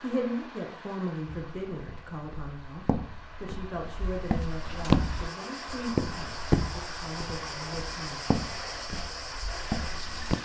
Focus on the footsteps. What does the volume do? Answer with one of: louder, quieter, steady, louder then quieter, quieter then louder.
louder then quieter.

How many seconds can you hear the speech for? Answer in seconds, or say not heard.
8 s.